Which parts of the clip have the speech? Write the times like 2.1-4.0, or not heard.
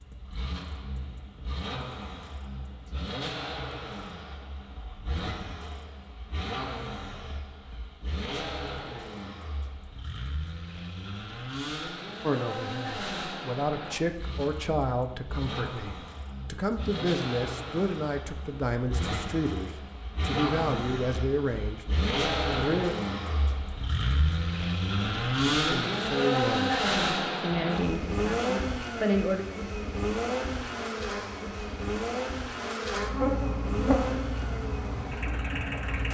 12.2-21.9, 22.5-22.9, 25.0-29.4.